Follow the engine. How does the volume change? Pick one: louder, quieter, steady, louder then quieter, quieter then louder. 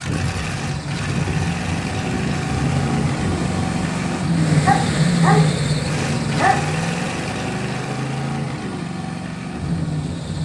louder then quieter.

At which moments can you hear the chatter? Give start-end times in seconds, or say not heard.
not heard.